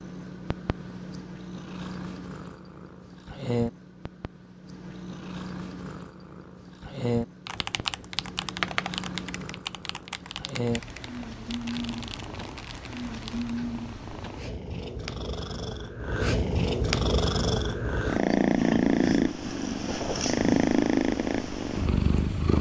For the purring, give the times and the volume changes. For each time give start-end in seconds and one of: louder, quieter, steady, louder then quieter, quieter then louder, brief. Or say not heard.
0.0-22.5 louder.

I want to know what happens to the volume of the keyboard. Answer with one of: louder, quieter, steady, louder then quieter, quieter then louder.
quieter.